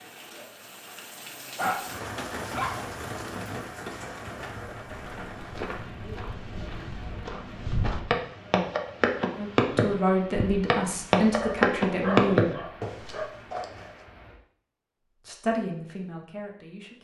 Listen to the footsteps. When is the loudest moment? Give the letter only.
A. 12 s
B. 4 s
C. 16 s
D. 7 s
A.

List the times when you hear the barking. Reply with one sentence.
The barking can be heard from 1.3 to 2.9 s and from 11.4 to 13.3 s.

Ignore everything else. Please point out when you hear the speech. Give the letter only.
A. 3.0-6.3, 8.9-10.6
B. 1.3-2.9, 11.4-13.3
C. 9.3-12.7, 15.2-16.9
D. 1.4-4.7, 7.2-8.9
C.